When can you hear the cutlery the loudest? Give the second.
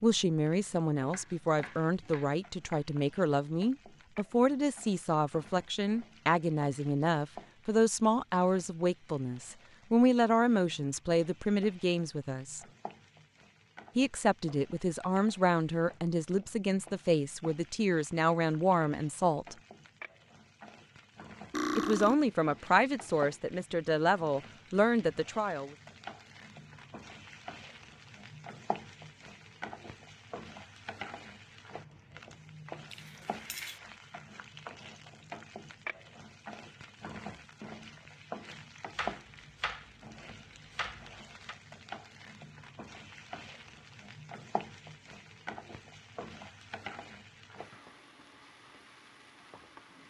22 s.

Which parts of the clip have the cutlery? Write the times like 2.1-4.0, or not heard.
21.5-22.1, 32.9-33.8.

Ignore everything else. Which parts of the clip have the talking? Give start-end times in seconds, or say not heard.
0.0-12.6, 13.9-19.6, 21.8-25.8.